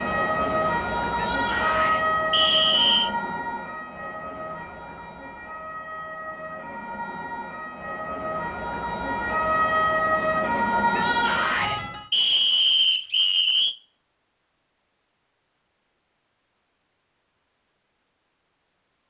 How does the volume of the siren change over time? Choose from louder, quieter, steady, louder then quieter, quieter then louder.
quieter then louder.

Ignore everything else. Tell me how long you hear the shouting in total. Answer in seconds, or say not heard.
2 s.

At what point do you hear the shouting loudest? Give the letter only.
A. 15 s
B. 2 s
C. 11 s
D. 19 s
C.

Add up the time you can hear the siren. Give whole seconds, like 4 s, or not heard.
12 s.